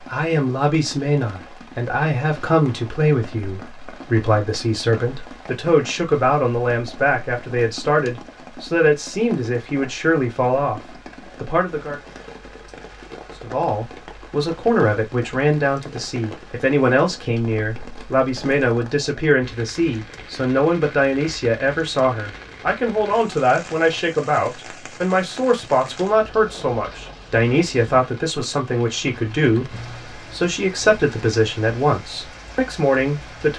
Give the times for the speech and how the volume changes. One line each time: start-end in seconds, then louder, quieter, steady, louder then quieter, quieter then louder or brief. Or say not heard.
0.1-10.8 steady
11.4-12.0 brief
13.4-33.5 steady.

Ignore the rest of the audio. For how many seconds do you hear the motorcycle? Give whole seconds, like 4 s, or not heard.
not heard.